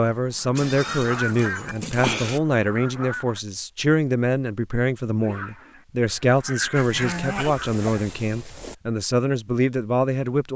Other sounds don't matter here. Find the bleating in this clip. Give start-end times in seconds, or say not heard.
0.6-2.4, 6.8-8.8.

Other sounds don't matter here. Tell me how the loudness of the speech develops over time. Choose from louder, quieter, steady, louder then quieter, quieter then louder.
steady.